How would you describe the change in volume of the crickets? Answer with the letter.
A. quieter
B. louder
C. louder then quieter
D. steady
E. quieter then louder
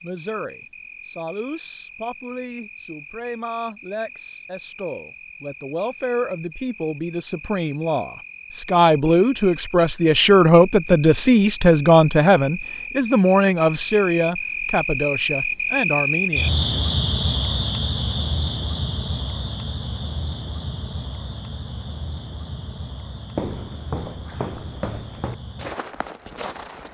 C.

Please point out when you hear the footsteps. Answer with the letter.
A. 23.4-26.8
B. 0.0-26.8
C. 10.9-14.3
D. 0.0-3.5
A.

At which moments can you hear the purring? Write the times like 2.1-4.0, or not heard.
not heard.